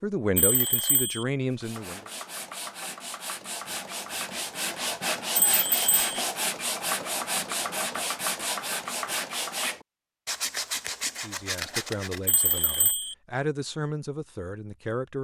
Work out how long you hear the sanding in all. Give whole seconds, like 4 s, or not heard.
11 s.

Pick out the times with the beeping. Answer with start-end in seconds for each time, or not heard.
0.3-1.2, 5.3-6.0, 12.2-13.2.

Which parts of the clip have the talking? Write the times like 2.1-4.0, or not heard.
0.0-2.1, 11.2-15.1.